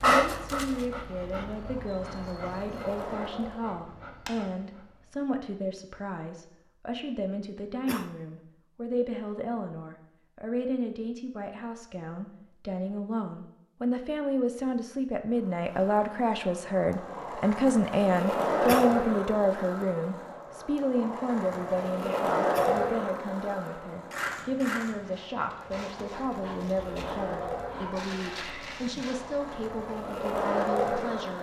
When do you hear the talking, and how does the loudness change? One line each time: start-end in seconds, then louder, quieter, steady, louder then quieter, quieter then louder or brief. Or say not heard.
0.0-31.3 louder then quieter.